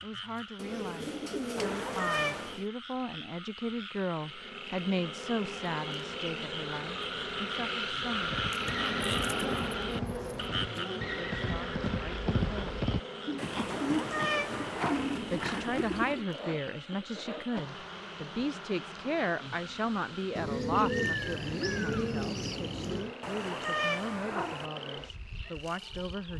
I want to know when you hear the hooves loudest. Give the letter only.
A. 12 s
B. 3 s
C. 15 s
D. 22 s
A.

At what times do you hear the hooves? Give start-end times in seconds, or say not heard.
8.2-16.2.